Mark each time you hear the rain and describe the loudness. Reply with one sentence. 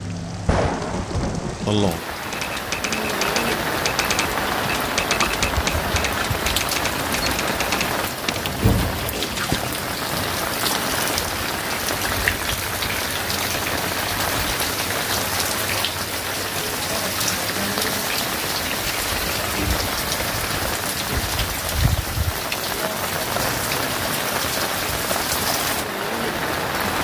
You can hear the rain from 0.0 to 27.0 s, at a steady volume.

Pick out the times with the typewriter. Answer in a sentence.
The typewriter can be heard from 2.2 to 9.7 s.